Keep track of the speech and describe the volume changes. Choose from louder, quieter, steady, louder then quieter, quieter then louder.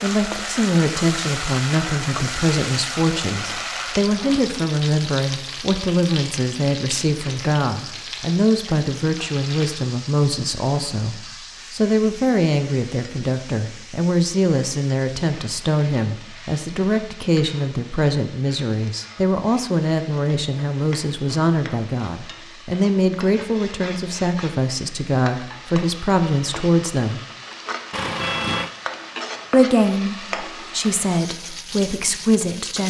steady.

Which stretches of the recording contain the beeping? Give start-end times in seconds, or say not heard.
27.9-28.7.